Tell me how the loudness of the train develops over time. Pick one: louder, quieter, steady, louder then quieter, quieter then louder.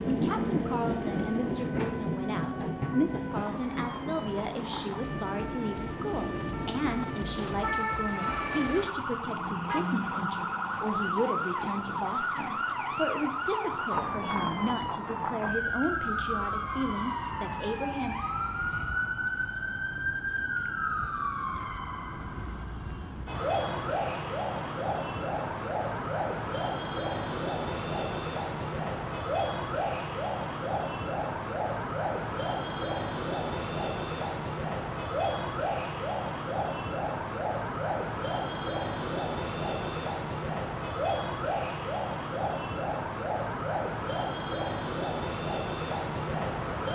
quieter.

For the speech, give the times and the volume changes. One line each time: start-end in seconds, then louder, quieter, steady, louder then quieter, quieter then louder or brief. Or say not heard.
0.1-18.1 steady.